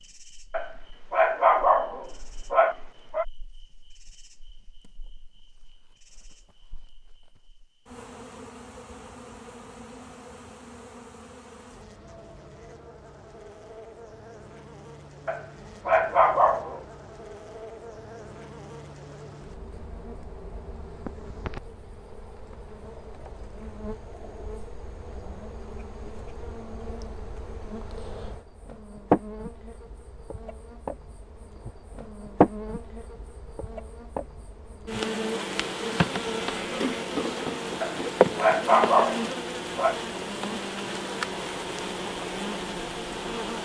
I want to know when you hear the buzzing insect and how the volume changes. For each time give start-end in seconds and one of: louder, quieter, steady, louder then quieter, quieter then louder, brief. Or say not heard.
0.0-43.6 louder.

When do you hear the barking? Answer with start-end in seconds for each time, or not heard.
0.5-3.2, 15.2-16.8, 37.8-40.0.